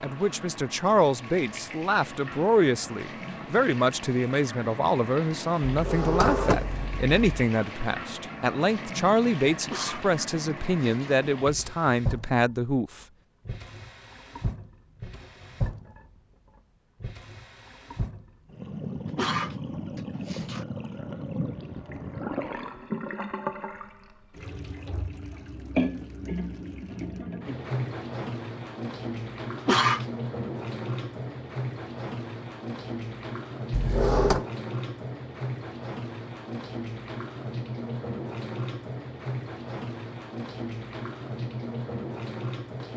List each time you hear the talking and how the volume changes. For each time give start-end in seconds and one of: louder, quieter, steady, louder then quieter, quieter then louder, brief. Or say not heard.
0.0-13.1 steady.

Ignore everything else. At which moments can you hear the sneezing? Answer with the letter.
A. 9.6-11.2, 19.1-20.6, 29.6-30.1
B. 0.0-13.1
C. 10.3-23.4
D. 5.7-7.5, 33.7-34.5
A.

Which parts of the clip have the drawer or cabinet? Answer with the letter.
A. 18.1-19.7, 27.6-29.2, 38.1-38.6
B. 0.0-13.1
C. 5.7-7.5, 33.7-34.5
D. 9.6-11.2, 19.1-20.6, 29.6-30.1
C.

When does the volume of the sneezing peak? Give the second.
30 s.